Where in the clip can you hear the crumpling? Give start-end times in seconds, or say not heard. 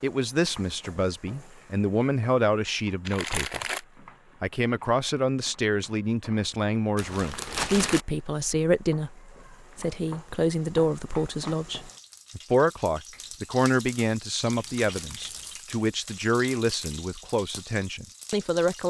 3.0-3.8, 7.0-8.1, 14.5-15.7.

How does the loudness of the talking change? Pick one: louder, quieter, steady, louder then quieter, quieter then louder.
steady.